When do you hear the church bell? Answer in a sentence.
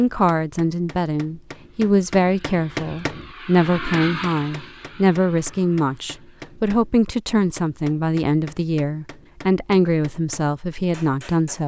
You can't hear the church bell here.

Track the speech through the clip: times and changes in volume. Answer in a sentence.
The speech can be heard from 0.0 to 11.6 s, at a steady volume.